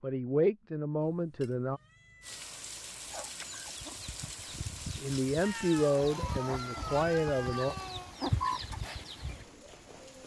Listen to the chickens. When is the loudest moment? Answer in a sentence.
The loudest moment of the chickens is at 8 seconds.